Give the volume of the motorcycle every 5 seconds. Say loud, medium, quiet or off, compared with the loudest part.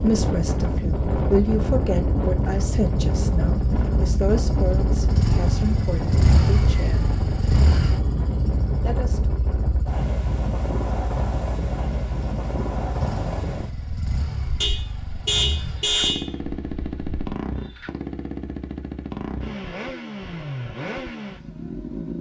medium, loud, medium, medium, medium.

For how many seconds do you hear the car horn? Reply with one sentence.
You can hear the car horn for 2 seconds altogether.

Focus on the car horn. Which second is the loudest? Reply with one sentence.
The loudest moment of the car horn is at 16 seconds.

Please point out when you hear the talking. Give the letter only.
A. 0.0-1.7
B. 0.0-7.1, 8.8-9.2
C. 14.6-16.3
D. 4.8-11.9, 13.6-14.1
B.